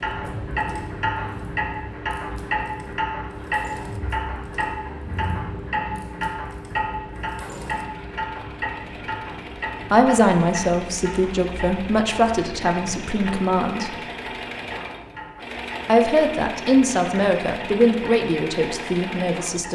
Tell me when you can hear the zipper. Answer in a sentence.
You can't hear the zipper here.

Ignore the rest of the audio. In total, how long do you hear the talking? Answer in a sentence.
You can hear the talking for 8 seconds altogether.